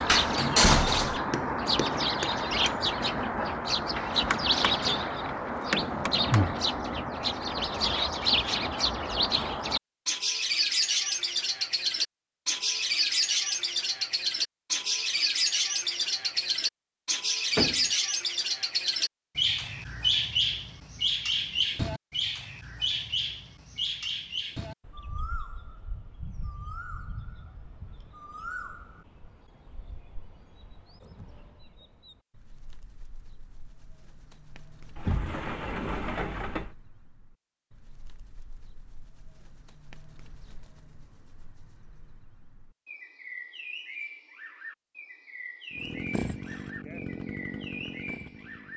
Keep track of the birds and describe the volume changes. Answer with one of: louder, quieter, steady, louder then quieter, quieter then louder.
quieter then louder.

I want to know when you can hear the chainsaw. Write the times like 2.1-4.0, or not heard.
45.7-48.7.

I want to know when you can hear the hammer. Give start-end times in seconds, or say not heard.
1.1-6.7.